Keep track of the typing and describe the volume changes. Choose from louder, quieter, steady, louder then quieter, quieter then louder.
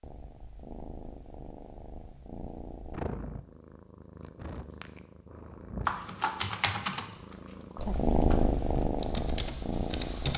quieter then louder.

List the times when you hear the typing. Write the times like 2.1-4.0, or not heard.
5.8-10.3.